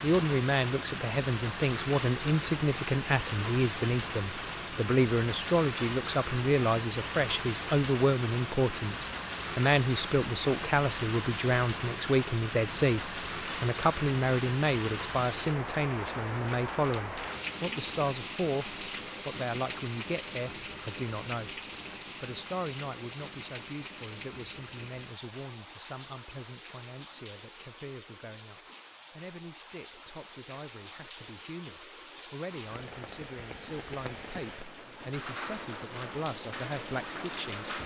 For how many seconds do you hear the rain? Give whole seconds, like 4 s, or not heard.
38 s.